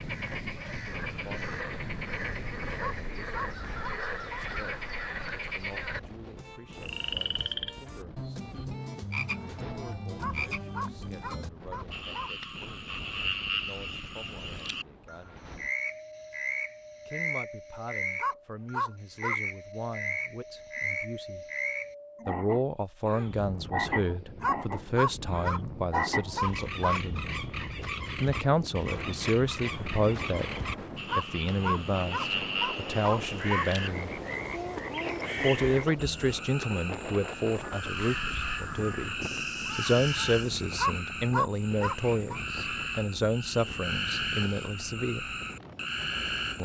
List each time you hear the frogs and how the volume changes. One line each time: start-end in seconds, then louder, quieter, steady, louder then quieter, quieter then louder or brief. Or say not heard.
0.0-46.6 steady.